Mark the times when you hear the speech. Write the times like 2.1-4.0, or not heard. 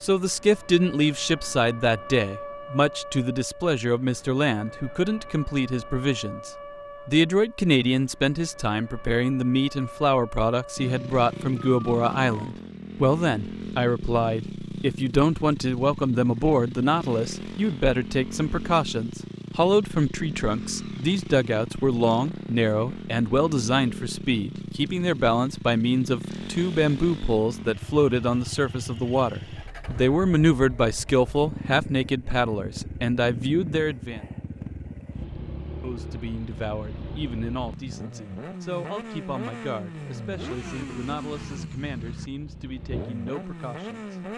0.0-34.2, 35.8-44.1.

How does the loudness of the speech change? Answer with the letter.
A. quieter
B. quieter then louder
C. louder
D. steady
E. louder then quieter
A.